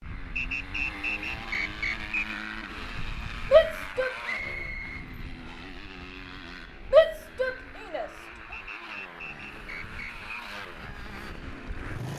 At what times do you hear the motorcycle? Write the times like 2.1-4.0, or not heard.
0.0-12.1.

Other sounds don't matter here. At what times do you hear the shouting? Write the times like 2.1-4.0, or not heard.
3.5-4.2, 6.9-8.1.